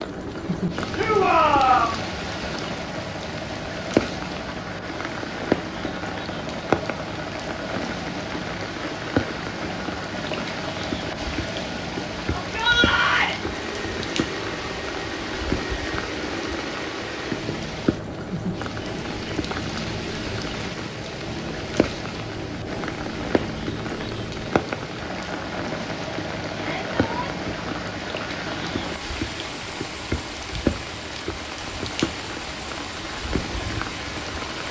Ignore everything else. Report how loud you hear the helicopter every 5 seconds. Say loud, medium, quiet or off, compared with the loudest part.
loud, loud, loud, loud, loud, loud, medium.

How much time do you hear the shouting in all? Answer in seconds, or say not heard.
3 s.